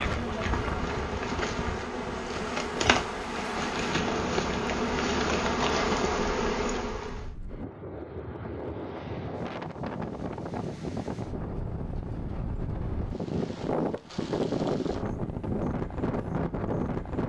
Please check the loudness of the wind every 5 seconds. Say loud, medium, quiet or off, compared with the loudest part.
medium, medium, loud, loud.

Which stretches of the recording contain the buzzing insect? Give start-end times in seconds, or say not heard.
0.0-7.3.